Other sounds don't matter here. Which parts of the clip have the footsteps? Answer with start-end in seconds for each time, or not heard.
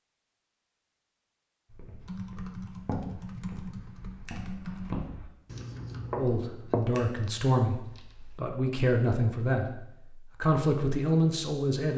1.7-5.3, 6.1-7.0.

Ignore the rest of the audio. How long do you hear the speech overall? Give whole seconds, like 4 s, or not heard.
5 s.